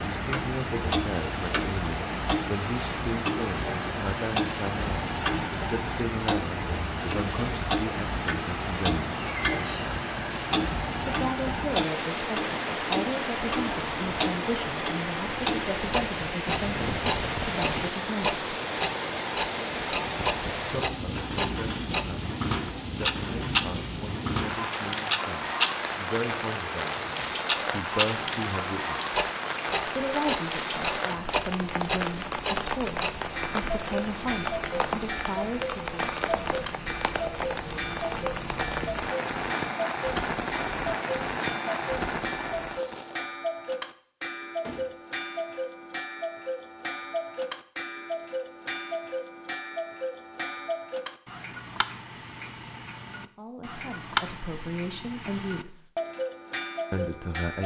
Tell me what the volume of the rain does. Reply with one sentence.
The loudness of the rain stays about the same.